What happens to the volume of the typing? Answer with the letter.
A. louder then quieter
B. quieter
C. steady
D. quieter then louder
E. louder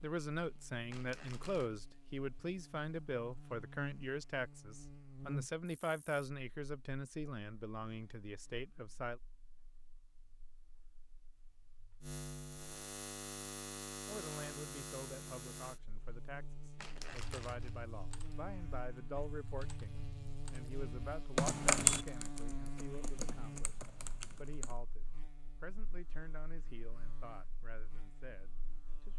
A.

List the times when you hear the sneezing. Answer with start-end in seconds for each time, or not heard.
not heard.